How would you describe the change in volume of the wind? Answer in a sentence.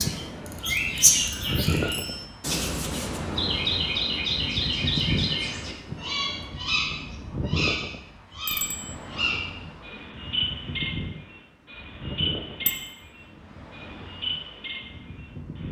The loudness of the wind goes down.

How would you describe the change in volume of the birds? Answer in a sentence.
The loudness of the birds goes down.